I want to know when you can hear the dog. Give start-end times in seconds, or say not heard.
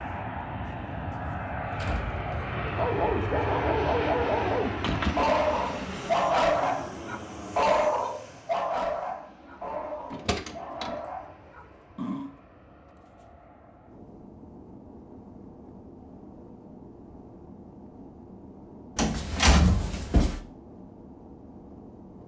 2.6-12.3.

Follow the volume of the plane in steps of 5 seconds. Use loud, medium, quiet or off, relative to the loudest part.
loud, medium, quiet, quiet, quiet.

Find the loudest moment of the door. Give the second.
20 s.